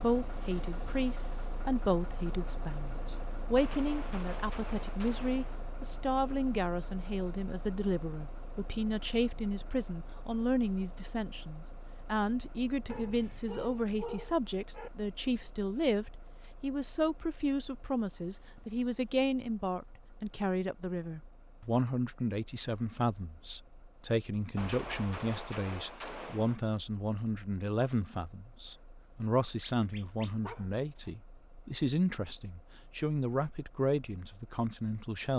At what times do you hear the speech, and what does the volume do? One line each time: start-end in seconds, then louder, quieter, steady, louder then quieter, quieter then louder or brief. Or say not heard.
0.0-35.3 steady.